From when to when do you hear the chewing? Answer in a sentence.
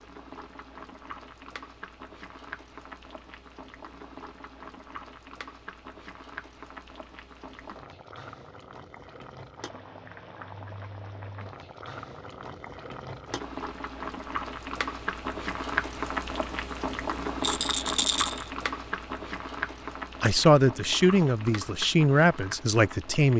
You can't hear the chewing here.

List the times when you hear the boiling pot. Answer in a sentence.
The boiling pot can be heard from 0.0 to 23.3 s.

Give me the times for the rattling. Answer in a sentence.
The rattling can be heard from 17.4 to 18.4 s.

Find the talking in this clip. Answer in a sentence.
The talking can be heard from 20.2 to 23.3 s.